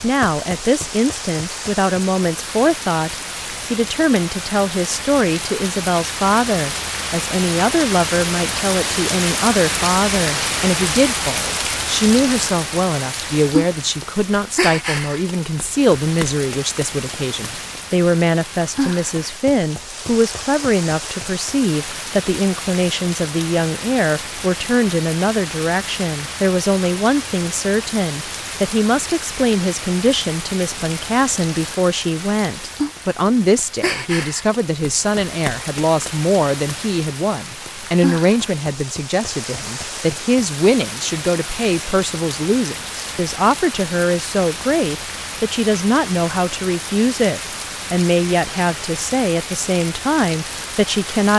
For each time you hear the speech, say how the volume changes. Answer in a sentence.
You can hear the speech from 0.0 to 51.3 s, at a steady volume.